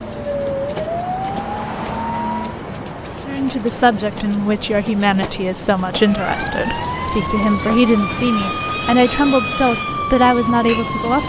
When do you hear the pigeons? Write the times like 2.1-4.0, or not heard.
not heard.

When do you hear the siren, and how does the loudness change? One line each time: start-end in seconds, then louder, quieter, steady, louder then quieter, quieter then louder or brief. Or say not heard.
0.0-2.6 brief
6.0-11.2 steady.